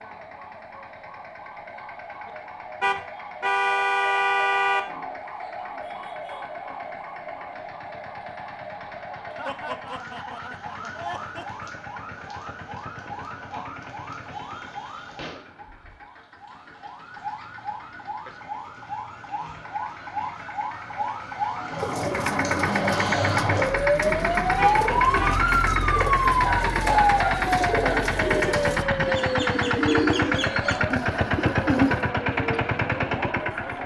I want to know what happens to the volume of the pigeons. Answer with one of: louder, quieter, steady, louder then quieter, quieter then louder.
louder.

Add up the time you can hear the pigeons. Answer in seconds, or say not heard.
10 s.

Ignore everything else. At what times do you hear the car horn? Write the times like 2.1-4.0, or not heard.
2.8-4.8, 24.6-25.4.